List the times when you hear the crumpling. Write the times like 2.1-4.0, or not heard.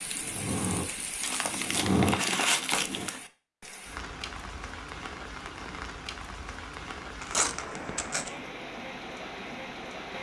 1.2-3.2, 7.2-8.3.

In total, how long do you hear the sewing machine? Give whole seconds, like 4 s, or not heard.
3 s.